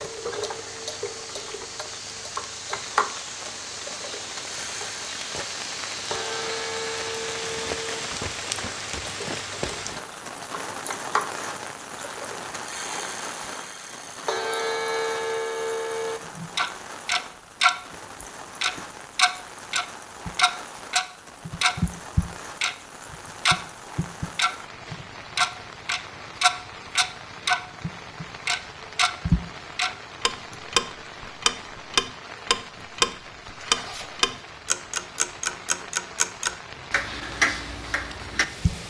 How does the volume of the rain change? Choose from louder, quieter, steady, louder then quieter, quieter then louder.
quieter.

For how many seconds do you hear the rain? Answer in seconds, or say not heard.
39 s.